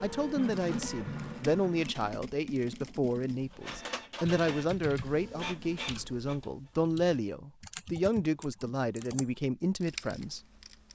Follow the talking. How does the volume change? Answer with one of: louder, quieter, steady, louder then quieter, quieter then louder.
steady.